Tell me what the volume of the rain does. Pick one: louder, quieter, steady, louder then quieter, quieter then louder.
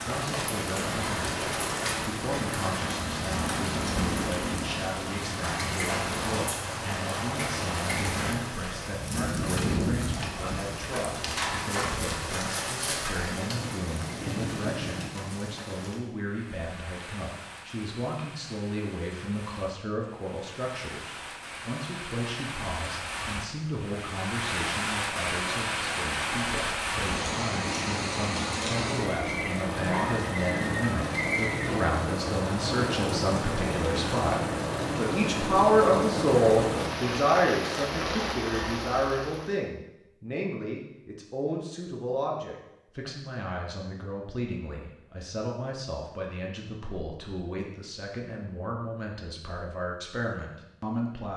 quieter then louder.